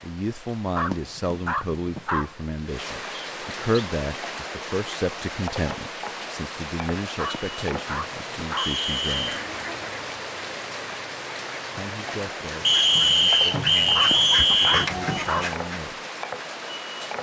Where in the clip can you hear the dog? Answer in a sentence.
The dog can be heard from 0.8 to 2.4 s, from 7.2 to 8.8 s and from 13.9 to 15.6 s.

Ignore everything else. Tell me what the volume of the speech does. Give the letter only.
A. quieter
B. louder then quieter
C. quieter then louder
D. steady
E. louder
A.